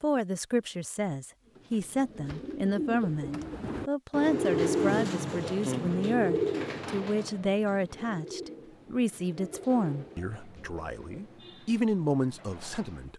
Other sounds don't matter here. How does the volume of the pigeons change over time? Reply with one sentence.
The volume of the pigeons goes up, then down.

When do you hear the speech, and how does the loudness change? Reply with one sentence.
You can hear the speech from 0.0 to 13.1 s, at a steady volume.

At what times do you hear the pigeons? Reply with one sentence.
The pigeons can be heard from 1.4 to 13.1 s.